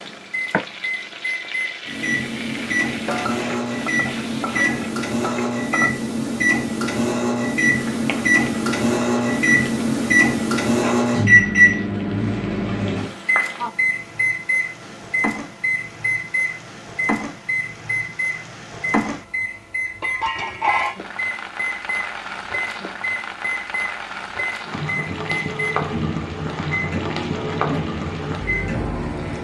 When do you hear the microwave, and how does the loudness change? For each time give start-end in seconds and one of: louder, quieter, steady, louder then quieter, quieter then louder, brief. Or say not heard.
0.0-29.4 louder then quieter.